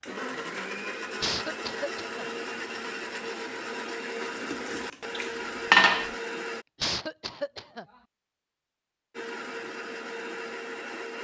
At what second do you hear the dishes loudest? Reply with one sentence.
The volume of the dishes peaks at 6 seconds.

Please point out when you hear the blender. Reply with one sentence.
You can hear the blender from 0.0 to 6.7 s and from 9.1 to 11.1 s.